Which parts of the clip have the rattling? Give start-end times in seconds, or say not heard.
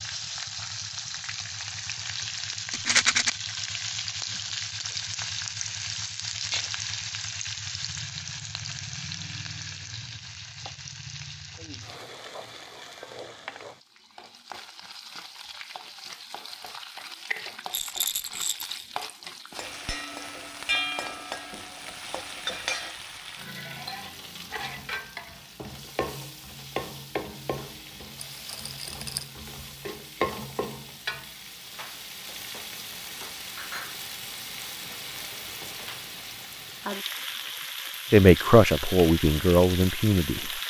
2.7-3.3, 17.7-18.9, 28.1-29.2.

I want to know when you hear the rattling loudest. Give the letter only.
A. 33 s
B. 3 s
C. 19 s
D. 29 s
B.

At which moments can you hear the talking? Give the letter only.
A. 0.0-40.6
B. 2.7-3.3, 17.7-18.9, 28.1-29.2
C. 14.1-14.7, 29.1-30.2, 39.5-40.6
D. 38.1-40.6
D.